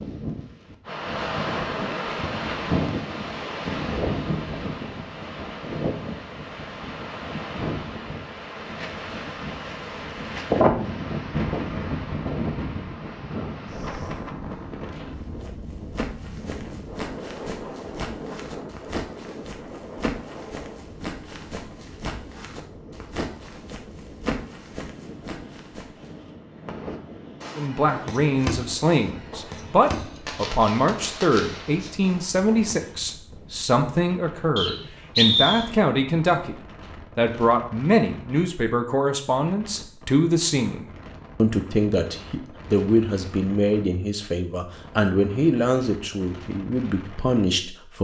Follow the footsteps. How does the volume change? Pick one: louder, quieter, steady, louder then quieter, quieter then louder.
steady.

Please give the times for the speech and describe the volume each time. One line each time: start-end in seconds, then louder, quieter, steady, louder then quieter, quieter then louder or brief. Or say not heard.
27.6-48.0 steady.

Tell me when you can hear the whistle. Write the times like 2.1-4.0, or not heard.
34.5-35.7.